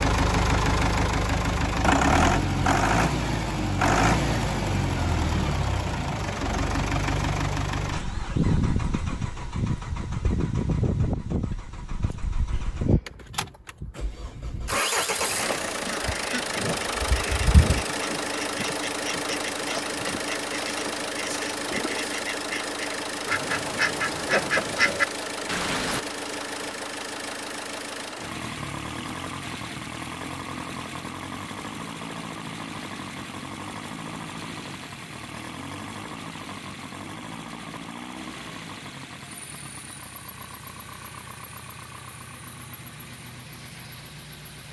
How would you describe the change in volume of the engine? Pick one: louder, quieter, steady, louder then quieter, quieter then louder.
quieter.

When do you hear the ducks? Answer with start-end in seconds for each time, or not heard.
14.9-26.0.